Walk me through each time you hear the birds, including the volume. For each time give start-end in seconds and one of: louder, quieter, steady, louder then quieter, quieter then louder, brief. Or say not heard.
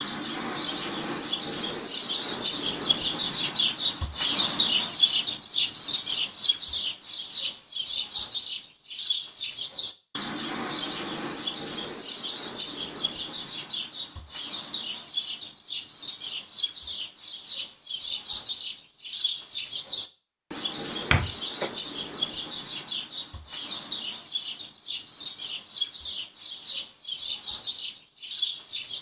0.0-28.9 quieter.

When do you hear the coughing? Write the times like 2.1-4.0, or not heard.
21.1-21.7.